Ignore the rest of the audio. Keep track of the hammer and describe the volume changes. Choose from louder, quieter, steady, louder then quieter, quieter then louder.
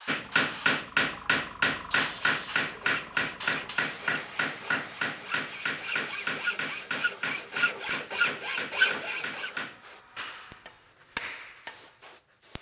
quieter.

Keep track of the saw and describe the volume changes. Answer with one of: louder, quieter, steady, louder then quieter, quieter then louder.
louder.